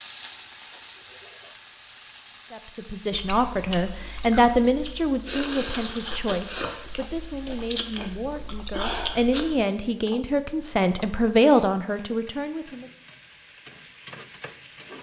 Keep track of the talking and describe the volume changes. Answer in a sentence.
The loudness of the talking goes down, then up.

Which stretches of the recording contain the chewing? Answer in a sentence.
You can hear the chewing from 3.1 to 9.7 s.